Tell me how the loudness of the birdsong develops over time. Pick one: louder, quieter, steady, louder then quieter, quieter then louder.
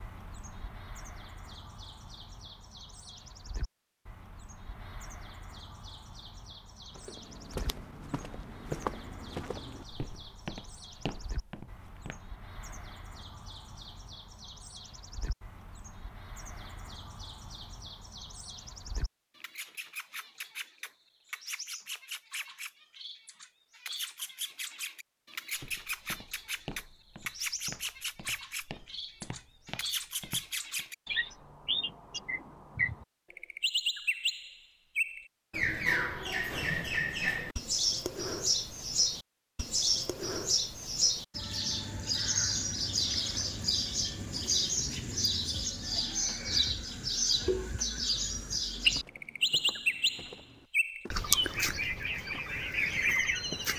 louder.